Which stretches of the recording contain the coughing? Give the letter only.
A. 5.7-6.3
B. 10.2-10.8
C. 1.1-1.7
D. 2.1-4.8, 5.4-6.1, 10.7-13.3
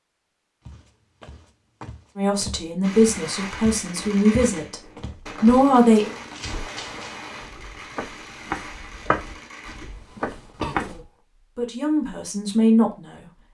B.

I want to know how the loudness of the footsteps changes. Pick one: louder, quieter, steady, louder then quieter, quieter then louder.
louder.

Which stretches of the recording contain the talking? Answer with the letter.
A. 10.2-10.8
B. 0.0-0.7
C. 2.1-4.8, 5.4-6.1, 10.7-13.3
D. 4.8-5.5
C.